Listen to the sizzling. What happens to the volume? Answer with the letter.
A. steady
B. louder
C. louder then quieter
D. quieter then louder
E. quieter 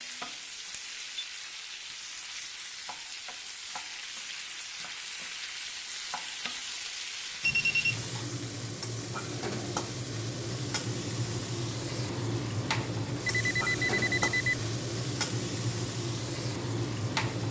B.